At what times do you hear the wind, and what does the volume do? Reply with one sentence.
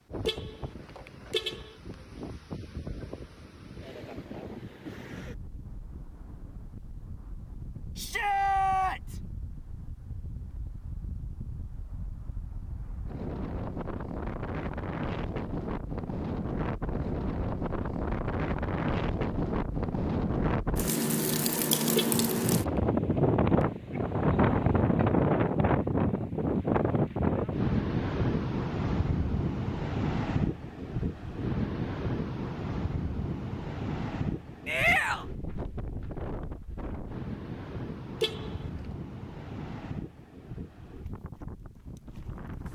The wind can be heard from 0.0 to 42.7 s, getting louder then quieter.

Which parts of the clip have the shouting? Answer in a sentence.
You can hear the shouting from 8.0 to 9.2 s and from 34.6 to 35.2 s.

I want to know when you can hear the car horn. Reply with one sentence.
The car horn can be heard from 0.2 to 1.8 s, from 21.9 to 22.8 s and from 38.2 to 38.6 s.